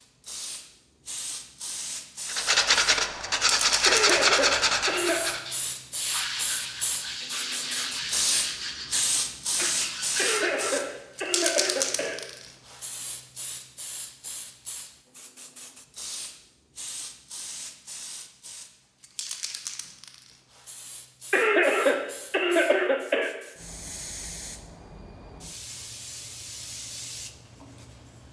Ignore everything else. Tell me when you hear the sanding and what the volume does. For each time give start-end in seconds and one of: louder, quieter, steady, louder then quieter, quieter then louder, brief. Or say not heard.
2.2-10.6 quieter.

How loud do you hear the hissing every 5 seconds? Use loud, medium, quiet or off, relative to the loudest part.
loud, loud, loud, medium, quiet, medium.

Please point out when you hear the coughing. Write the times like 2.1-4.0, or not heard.
3.9-5.2, 10.2-12.2, 21.3-23.3.